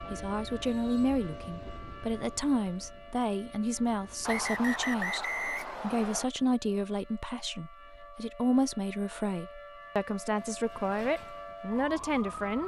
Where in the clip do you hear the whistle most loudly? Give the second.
5 s.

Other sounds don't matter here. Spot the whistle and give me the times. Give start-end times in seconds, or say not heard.
4.2-6.2.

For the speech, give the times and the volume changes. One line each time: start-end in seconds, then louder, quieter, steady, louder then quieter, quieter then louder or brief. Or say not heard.
0.0-12.6 steady.